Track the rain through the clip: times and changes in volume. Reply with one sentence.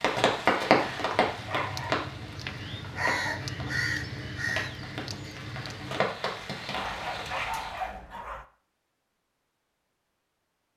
You can hear the rain from 0.0 to 7.7 s, getting quieter then louder.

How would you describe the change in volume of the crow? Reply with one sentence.
The loudness of the crow goes up, then down.